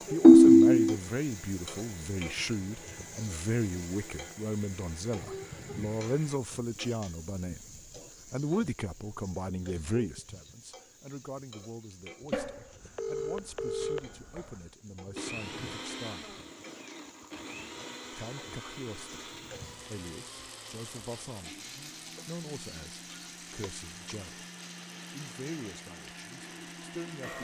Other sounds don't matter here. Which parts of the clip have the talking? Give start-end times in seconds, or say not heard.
0.1-16.4, 18.1-21.6, 22.2-24.4, 25.1-27.3.